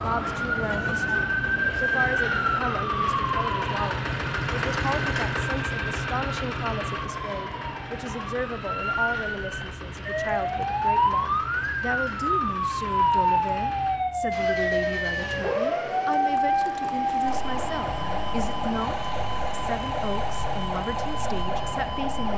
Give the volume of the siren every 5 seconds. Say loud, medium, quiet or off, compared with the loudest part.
loud, medium, loud, loud, medium.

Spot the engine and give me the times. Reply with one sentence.
You can hear the engine from 0.0 to 22.3 s.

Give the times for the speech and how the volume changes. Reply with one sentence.
You can hear the speech from 0.0 to 22.3 s, at a steady volume.